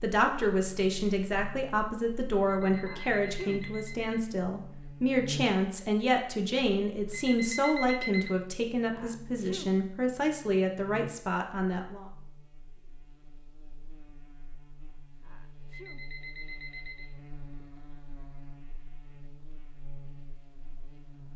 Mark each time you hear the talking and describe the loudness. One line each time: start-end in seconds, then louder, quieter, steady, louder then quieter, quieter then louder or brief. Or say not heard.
0.0-12.1 steady.